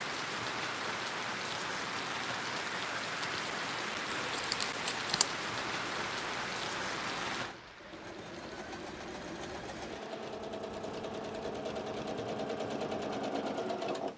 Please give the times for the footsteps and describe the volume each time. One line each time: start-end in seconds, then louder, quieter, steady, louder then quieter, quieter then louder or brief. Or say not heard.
not heard.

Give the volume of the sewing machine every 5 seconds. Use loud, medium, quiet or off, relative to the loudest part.
off, medium, loud.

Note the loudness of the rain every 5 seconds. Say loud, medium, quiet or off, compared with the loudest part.
loud, loud, quiet.